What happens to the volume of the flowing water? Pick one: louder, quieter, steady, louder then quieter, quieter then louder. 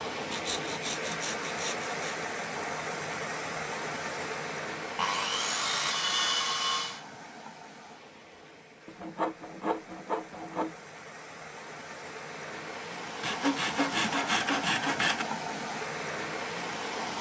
quieter then louder.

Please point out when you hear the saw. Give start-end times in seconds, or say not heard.
0.3-2.1, 5.0-7.0, 8.8-10.8, 13.2-15.2.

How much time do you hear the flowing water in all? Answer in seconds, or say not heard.
17 s.